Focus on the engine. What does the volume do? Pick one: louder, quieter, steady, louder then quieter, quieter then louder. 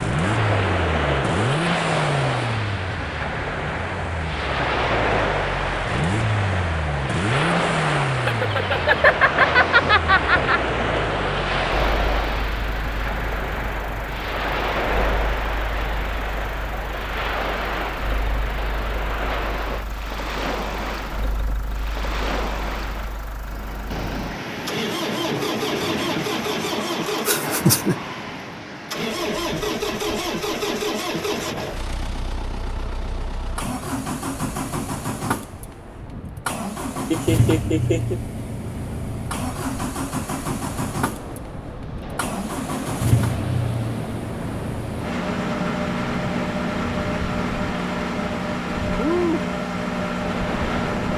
quieter then louder.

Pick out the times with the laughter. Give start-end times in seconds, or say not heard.
8.2-10.6, 27.2-27.9, 37.1-38.2.